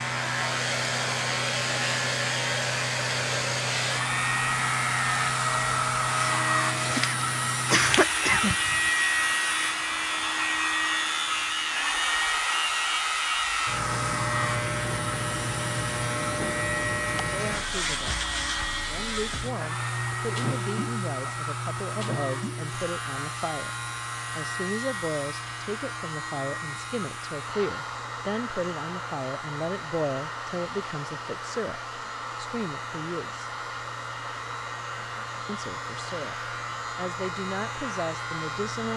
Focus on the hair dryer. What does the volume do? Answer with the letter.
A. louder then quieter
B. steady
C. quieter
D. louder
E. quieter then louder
C.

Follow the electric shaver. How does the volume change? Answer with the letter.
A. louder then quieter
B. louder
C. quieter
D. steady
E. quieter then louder
C.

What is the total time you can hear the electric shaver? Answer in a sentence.
You can hear the electric shaver for 39 seconds altogether.